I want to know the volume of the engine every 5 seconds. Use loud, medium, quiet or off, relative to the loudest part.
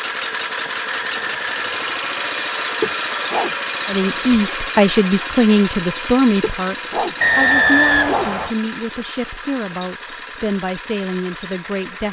loud, medium, medium.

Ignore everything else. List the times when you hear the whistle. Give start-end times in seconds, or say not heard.
0.9-2.1, 7.2-8.6.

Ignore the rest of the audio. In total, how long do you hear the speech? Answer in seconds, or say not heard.
8 s.